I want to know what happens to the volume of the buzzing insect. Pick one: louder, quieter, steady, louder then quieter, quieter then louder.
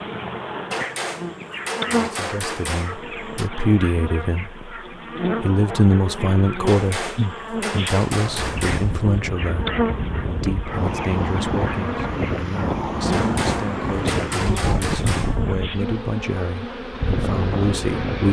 steady.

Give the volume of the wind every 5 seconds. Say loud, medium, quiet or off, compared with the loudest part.
off, medium, loud, loud.